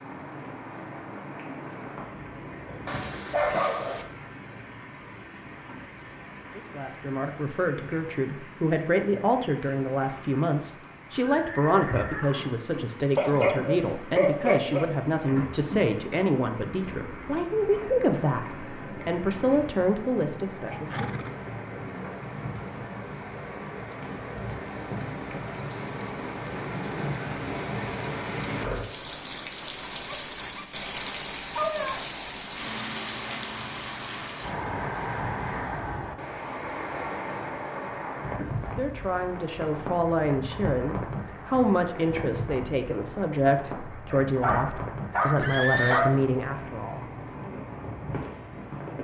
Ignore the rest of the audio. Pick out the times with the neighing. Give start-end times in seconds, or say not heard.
11.4-12.7, 20.9-21.4, 45.4-46.0.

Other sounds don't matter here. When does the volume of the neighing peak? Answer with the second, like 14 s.
46 s.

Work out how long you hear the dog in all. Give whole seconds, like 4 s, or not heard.
7 s.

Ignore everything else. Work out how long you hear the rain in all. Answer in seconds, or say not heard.
49 s.